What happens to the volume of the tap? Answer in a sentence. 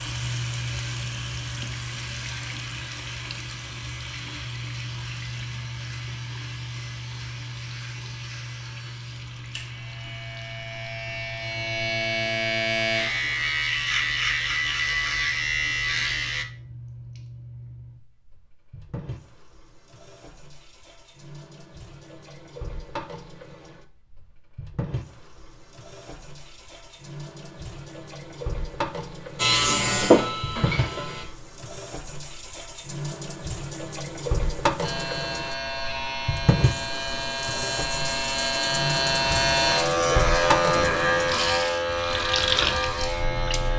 The loudness of the tap goes down, then up.